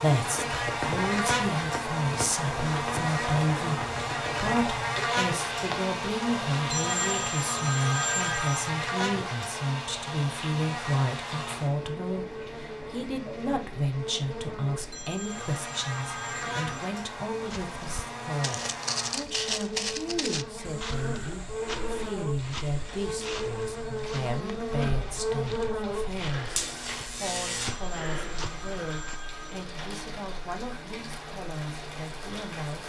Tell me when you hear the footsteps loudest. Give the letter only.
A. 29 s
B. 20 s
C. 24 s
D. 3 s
B.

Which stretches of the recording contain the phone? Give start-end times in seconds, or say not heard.
6.7-8.7, 14.9-16.9, 27.6-29.6.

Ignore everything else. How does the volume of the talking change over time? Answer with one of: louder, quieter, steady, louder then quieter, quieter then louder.
quieter.